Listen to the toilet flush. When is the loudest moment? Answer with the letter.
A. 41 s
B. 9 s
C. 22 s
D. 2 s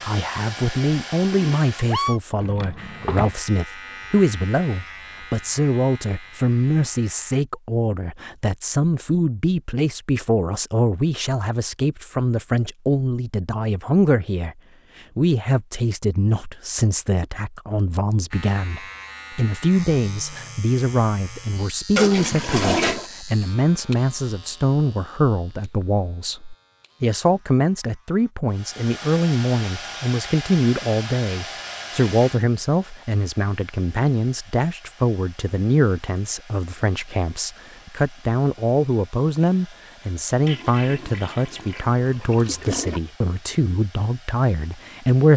C.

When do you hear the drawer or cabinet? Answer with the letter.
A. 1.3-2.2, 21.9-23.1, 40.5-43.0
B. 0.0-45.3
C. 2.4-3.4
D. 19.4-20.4
C.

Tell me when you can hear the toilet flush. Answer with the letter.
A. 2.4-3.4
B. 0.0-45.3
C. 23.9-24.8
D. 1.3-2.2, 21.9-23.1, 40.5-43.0
D.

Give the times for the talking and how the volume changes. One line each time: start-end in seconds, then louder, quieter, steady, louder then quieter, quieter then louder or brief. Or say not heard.
0.0-45.3 steady.